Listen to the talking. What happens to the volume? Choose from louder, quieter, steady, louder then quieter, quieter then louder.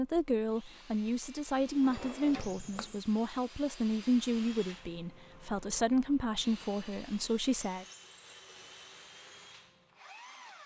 steady.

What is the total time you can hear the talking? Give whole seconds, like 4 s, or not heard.
8 s.